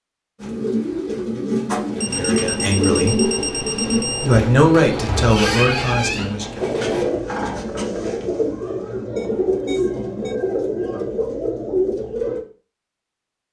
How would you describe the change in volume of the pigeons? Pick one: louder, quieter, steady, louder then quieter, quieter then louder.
steady.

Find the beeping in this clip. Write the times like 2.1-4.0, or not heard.
2.0-4.4, 9.2-10.4.